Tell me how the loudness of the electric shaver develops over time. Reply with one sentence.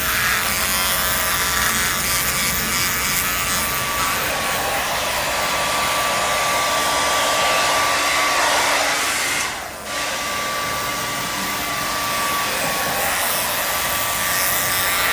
The loudness of the electric shaver goes down, then up.